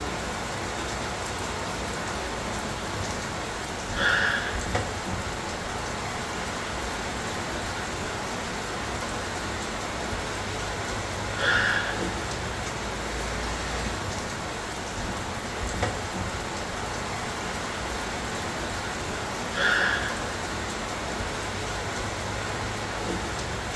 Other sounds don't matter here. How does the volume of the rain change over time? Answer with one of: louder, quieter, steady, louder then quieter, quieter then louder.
steady.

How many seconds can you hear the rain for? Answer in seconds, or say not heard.
24 s.